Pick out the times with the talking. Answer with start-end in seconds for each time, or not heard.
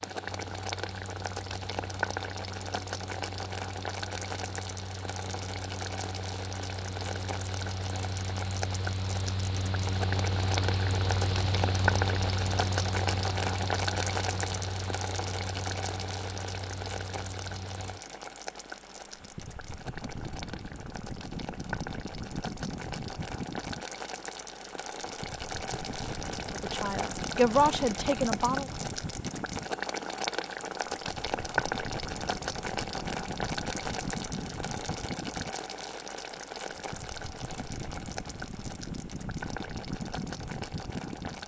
26.5-28.6.